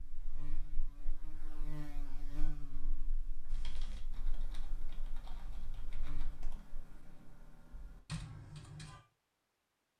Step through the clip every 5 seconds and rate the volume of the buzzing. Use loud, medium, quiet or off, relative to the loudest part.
loud, medium.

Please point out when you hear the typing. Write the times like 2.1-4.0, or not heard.
3.5-9.0.